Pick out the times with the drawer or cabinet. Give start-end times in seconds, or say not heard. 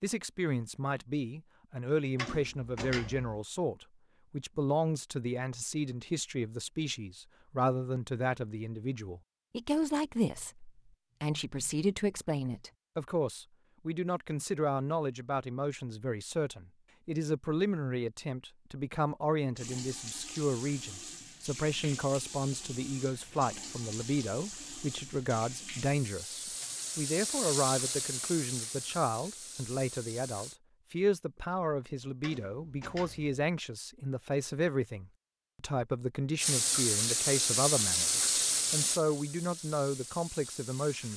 2.1-3.4, 32.2-33.4.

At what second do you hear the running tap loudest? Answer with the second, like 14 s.
38 s.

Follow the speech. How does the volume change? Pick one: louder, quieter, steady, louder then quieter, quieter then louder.
steady.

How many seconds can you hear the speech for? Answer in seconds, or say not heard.
41 s.